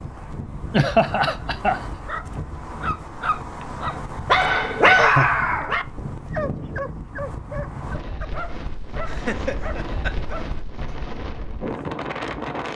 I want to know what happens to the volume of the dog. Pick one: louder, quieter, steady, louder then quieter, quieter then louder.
louder then quieter.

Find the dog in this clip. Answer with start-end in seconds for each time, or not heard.
2.0-11.1.